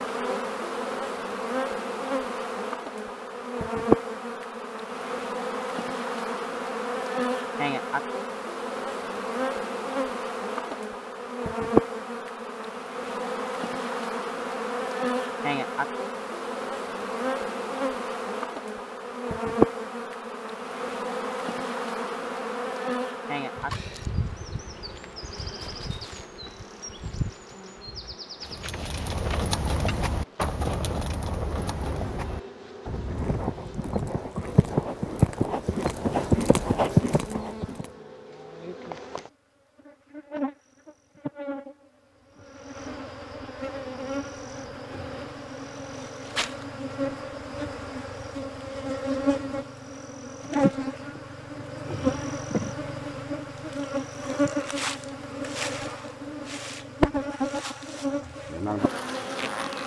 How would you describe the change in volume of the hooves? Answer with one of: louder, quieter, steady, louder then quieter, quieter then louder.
louder.